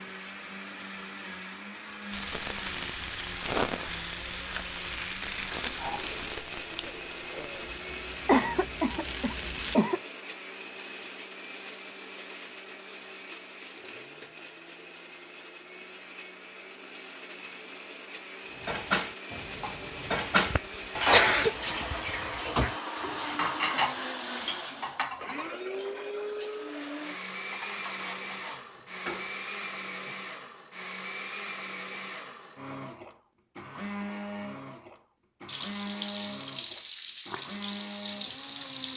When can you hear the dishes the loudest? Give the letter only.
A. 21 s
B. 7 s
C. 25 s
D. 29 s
A.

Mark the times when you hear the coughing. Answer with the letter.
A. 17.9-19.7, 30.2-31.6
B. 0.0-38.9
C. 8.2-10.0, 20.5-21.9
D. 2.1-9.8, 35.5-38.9
C.